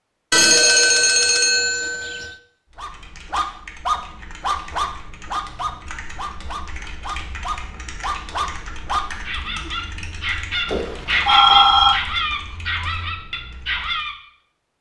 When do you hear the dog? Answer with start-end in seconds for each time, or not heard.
2.8-14.2.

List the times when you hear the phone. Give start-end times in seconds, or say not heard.
0.3-2.4, 10.7-12.0.